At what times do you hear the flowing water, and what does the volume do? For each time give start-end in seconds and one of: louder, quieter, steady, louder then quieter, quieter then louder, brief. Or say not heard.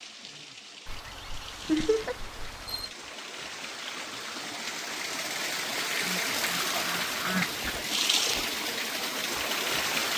0.0-10.1 louder.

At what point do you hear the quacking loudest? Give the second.
7 s.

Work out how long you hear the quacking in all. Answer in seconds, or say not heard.
4 s.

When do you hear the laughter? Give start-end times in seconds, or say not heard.
1.6-2.1.